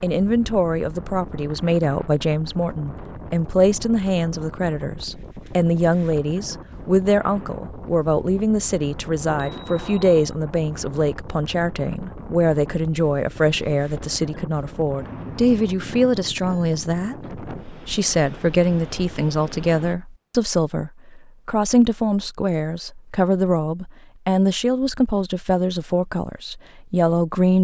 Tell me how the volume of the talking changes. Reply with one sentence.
The volume of the talking stays about the same.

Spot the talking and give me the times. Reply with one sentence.
You can hear the talking from 0.0 to 27.5 s.